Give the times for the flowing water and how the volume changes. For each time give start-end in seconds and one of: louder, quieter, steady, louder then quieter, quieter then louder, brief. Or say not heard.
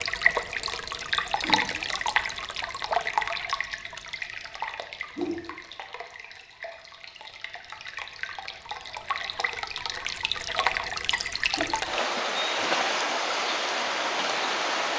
0.0-14.9 quieter then louder.